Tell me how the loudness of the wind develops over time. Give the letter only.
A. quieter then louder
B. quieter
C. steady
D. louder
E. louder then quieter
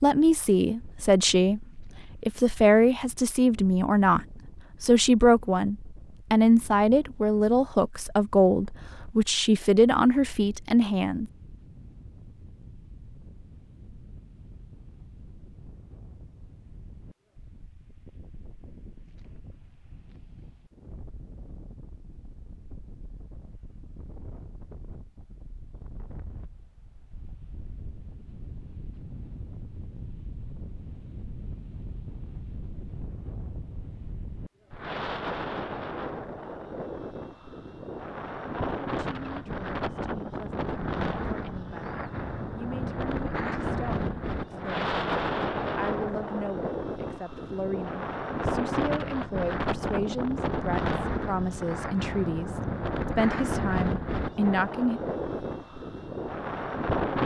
D.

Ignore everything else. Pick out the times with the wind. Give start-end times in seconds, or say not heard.
0.1-57.2.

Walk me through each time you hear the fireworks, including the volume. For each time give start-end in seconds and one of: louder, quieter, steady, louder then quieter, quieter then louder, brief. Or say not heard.
not heard.